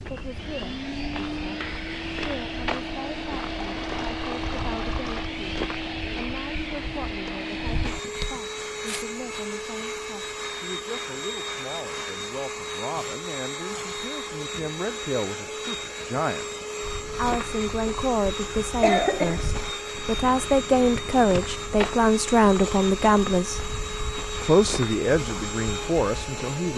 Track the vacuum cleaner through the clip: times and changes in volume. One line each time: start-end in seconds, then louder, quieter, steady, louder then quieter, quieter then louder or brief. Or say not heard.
0.0-26.7 steady.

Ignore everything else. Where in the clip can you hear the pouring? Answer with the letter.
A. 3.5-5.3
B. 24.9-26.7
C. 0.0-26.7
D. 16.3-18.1
A.